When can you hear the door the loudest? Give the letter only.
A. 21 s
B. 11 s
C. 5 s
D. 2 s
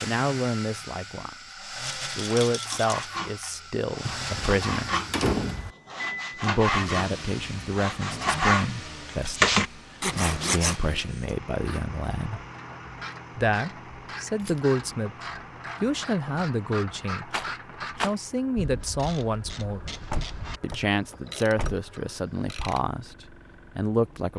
C.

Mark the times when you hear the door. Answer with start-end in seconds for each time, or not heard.
4.0-5.8, 20.1-21.9.